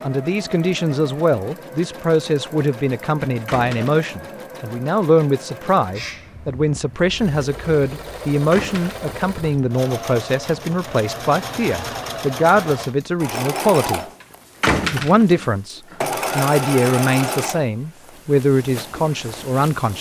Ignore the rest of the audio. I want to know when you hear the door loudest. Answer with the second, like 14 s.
15 s.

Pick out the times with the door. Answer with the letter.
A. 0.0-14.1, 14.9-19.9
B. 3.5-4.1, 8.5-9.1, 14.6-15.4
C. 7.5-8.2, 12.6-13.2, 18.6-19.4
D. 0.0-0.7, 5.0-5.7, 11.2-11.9
B.